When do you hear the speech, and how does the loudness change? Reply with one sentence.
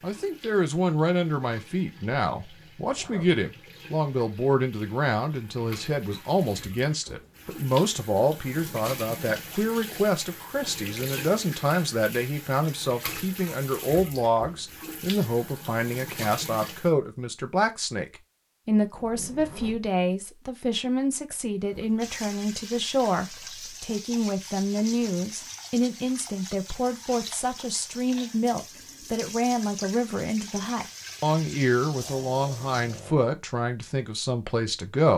You can hear the speech from 0.0 to 18.1 s, at a steady volume; and from 18.6 to 35.1 s, at a steady volume.